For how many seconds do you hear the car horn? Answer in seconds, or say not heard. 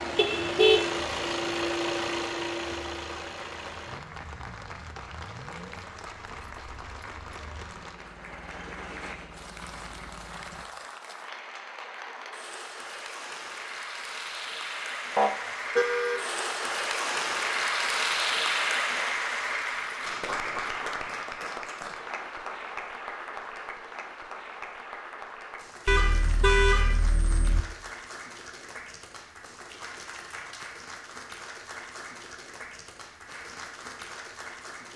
4 s.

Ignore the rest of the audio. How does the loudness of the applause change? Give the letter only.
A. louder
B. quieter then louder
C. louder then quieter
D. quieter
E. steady
C.